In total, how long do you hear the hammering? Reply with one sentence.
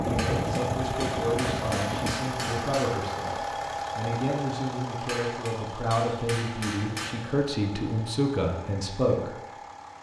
The hammering can be heard for 5 seconds in total.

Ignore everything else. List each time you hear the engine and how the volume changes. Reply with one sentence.
You can hear the engine from 0.0 to 9.9 s, getting quieter.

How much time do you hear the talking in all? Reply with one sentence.
You can hear the talking for 9 seconds altogether.